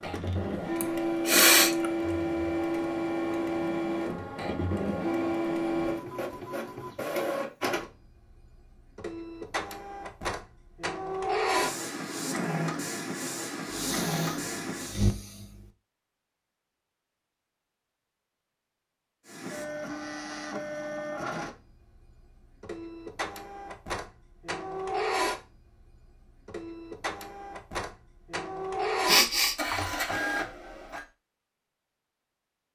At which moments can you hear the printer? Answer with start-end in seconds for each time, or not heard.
0.0-15.0, 19.2-31.1.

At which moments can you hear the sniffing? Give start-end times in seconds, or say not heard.
0.8-1.9, 13.7-15.7, 29.1-29.6.